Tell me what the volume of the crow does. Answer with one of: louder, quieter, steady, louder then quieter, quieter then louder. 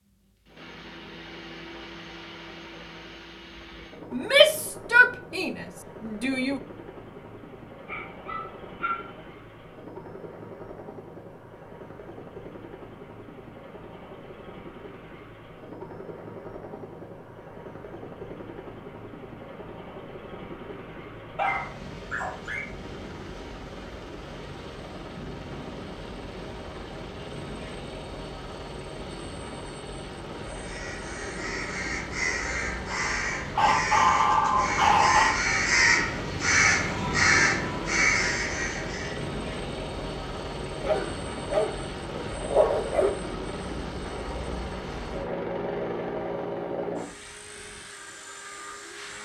louder.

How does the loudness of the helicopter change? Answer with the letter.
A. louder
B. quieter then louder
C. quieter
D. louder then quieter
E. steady
A.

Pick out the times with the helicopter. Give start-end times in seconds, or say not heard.
0.0-49.2.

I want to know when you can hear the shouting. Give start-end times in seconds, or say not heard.
4.1-6.6.